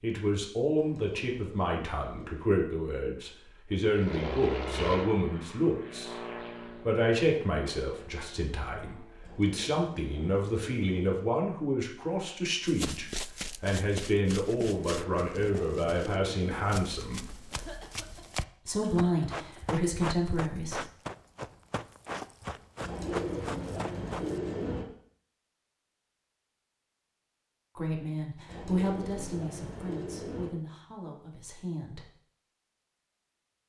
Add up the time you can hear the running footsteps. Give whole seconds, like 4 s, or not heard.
12 s.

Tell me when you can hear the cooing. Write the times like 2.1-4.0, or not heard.
0.8-2.5, 9.2-11.2, 14.7-16.6, 22.8-24.9, 28.4-30.5.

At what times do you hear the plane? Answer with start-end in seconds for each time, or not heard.
3.9-9.3.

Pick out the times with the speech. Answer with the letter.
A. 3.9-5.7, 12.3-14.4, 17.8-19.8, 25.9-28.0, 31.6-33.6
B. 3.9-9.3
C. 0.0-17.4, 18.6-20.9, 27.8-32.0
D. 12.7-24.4
C.